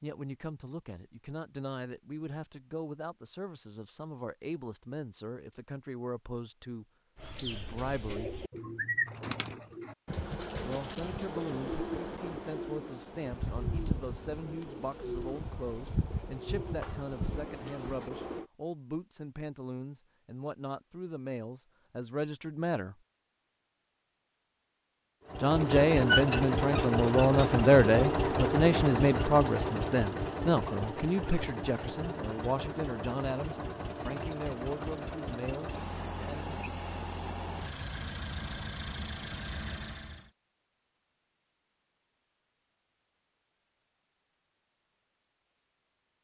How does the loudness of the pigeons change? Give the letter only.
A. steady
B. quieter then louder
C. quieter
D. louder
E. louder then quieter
A.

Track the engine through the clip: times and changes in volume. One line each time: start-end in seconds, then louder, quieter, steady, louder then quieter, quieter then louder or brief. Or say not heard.
25.2-40.3 quieter.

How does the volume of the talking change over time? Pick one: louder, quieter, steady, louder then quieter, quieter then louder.
louder then quieter.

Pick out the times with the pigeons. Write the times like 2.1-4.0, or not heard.
7.2-18.4.